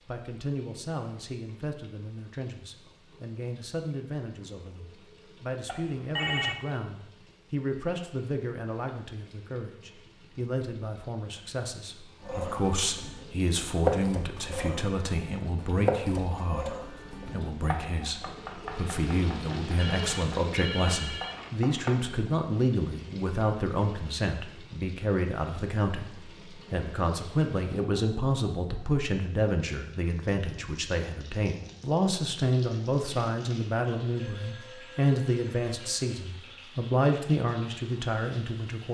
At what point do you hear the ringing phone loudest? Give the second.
6 s.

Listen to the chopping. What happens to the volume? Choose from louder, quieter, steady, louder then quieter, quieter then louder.
quieter.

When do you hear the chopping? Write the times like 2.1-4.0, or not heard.
12.2-21.9.